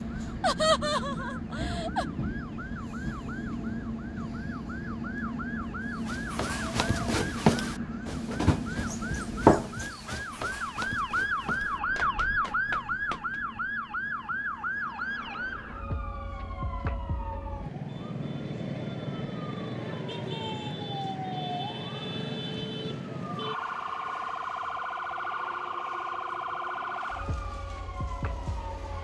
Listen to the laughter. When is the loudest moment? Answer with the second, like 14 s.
1 s.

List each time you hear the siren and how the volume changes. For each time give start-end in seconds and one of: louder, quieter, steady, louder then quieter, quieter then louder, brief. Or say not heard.
0.0-28.9 louder.